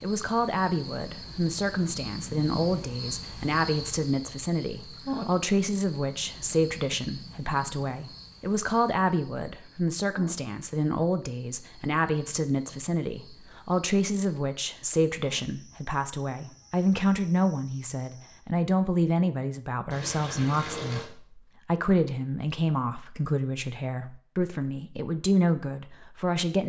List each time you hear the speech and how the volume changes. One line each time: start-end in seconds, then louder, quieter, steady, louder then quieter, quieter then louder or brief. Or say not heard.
0.0-26.6 steady.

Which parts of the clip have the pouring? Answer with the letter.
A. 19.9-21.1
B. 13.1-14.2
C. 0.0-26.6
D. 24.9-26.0
A.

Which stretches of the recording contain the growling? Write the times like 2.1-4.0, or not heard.
not heard.